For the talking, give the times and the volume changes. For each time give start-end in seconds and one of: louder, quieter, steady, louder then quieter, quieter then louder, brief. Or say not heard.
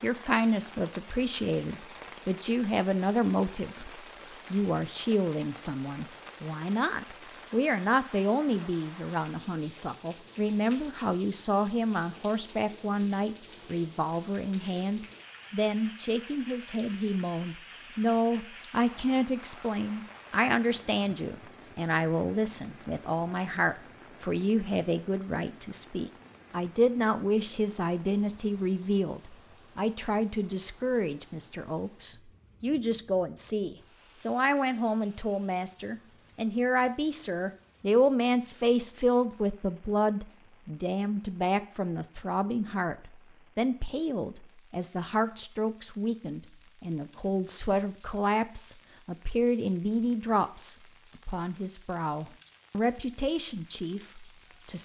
0.0-54.8 steady.